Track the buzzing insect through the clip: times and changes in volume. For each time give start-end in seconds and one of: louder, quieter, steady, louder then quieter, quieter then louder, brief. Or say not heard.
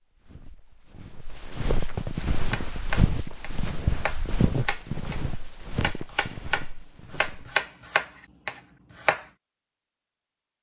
not heard.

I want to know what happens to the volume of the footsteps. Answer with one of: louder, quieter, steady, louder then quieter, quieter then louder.
louder then quieter.